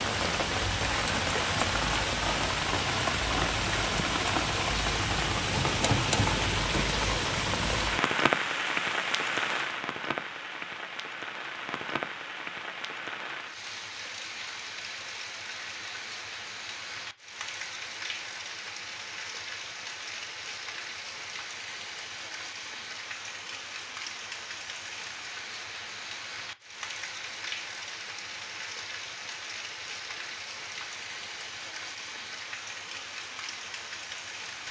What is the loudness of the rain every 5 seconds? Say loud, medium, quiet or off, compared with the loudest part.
loud, loud, medium, medium, medium, medium, medium.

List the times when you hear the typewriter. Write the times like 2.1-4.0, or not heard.
5.5-7.1.